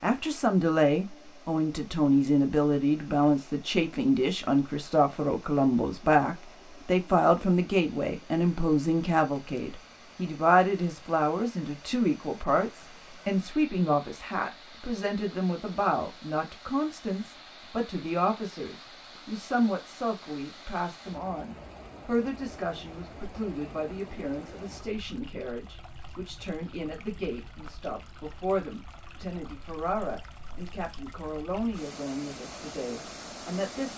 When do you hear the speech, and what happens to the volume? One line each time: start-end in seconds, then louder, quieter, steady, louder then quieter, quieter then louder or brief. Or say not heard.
0.0-33.9 quieter.